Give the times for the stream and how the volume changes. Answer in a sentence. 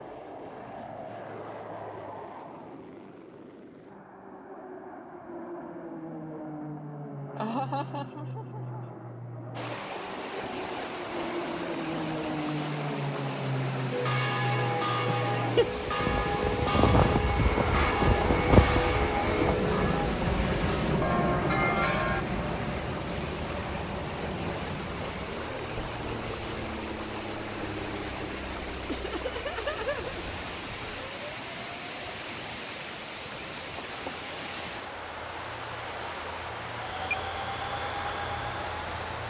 You can hear the stream from 9.5 to 39.2 s, at a steady volume.